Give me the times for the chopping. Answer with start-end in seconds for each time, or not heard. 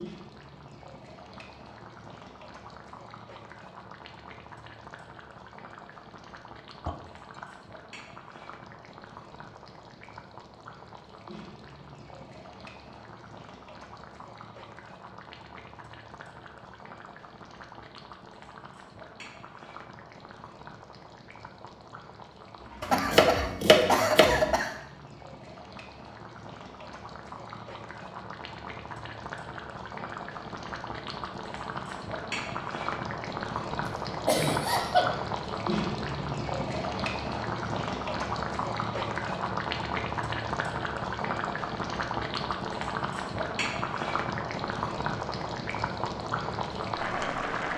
22.8-24.6.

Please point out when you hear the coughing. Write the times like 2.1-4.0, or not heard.
6.8-7.5, 22.9-24.8, 34.2-35.1.